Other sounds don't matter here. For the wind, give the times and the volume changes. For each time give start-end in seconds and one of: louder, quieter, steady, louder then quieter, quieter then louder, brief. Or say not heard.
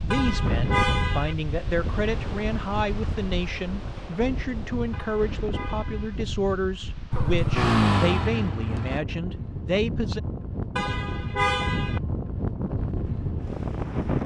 0.0-14.2 quieter then louder.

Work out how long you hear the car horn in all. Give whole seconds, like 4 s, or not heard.
4 s.